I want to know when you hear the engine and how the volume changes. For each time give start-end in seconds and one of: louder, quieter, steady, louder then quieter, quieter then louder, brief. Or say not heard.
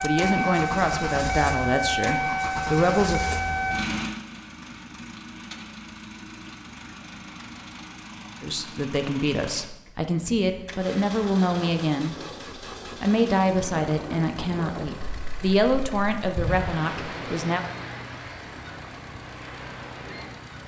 0.0-20.6 quieter.